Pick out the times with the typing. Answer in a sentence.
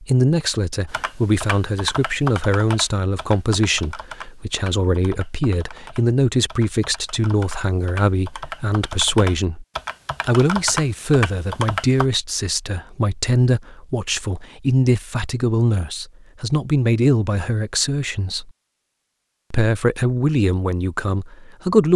You can hear the typing from 0.9 to 12.1 s.